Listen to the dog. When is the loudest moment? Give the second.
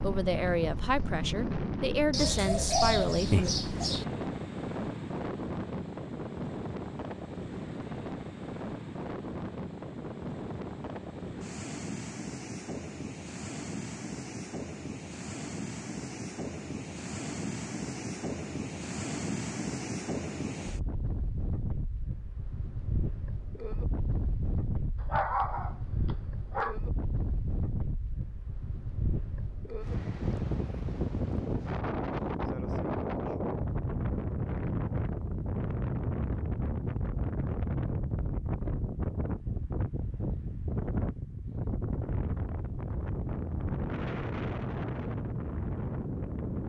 25 s.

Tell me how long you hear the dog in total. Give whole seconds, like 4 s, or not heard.
2 s.